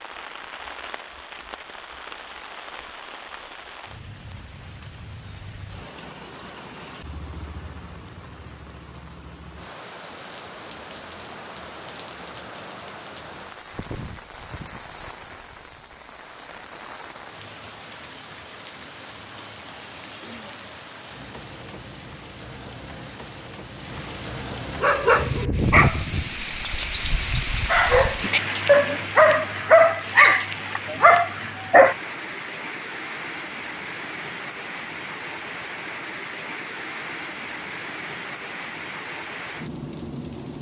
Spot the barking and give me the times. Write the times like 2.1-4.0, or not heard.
24.8-31.9.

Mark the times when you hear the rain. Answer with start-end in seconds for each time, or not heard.
0.0-40.5.